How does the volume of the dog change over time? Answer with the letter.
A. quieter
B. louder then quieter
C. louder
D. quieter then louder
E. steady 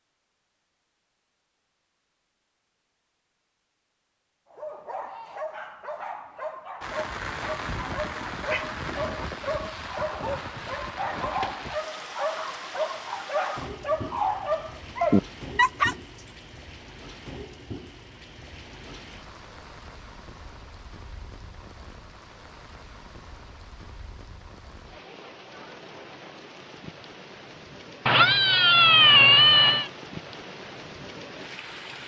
C.